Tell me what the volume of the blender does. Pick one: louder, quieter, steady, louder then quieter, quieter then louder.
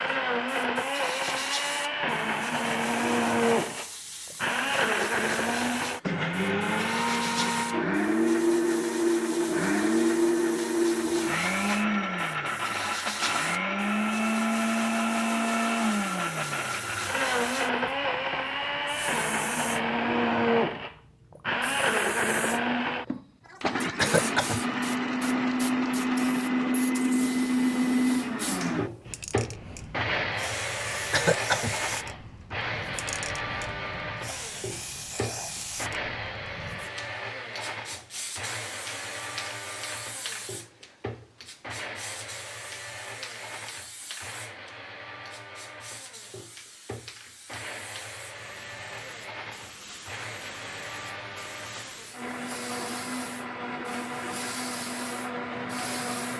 quieter.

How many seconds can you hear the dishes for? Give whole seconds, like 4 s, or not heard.
not heard.